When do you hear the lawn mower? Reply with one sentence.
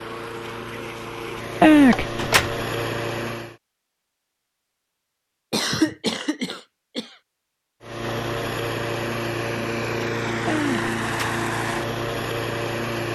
The lawn mower can be heard from 0.0 to 3.6 s and from 7.8 to 13.1 s.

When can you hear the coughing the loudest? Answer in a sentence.
The loudest moment of the coughing is at 2 seconds.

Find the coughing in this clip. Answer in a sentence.
The coughing can be heard from 1.6 to 2.5 s, from 5.5 to 7.1 s and from 10.4 to 11.4 s.